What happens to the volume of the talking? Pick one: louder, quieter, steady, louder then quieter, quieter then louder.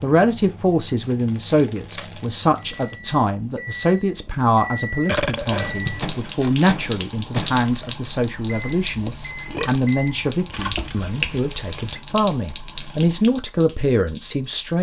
steady.